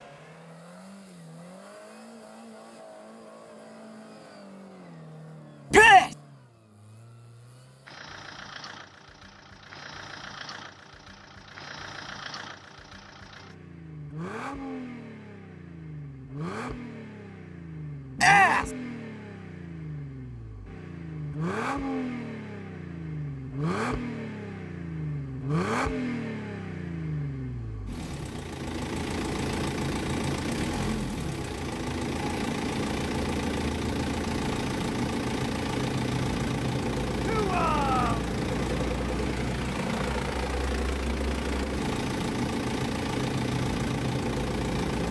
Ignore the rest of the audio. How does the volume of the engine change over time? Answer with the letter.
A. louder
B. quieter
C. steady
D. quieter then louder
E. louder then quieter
A.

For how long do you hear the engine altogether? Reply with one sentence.
The engine can be heard for 45 seconds in total.